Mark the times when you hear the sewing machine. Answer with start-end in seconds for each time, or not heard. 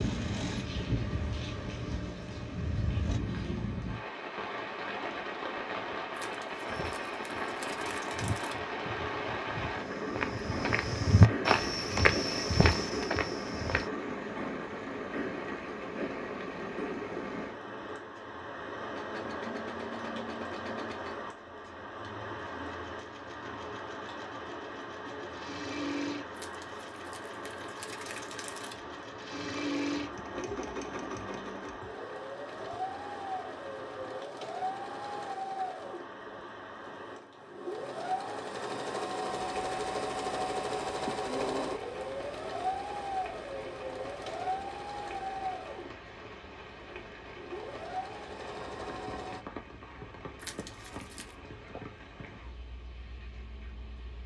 0.0-3.2, 18.1-49.5.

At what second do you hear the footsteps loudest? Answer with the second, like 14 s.
11 s.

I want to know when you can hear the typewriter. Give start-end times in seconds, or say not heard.
not heard.